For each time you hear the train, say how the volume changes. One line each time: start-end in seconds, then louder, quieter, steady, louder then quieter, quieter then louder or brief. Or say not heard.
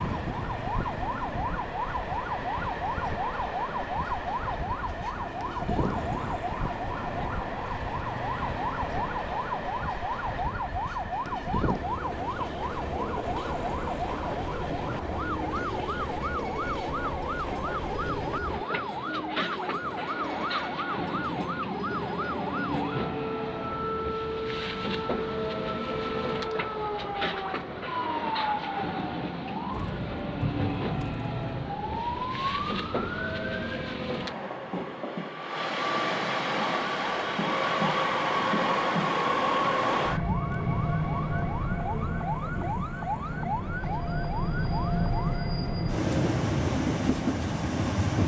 0.0-48.2 louder.